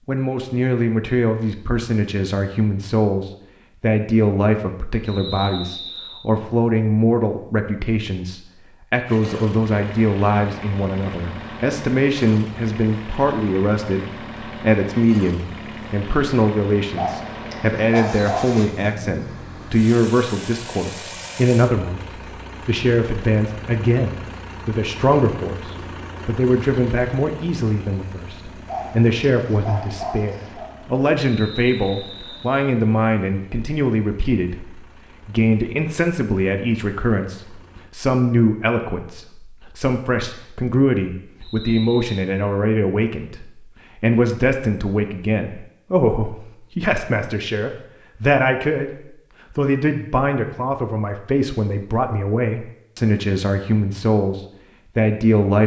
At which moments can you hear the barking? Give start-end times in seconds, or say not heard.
16.9-18.8, 28.6-30.7.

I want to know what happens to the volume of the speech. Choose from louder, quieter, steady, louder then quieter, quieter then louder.
steady.